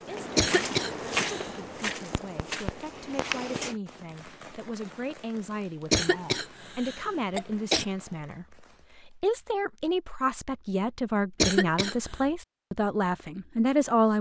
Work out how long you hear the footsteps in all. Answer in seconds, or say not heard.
4 s.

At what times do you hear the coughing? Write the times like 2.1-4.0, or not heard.
0.3-1.6, 5.9-7.8, 11.4-12.2.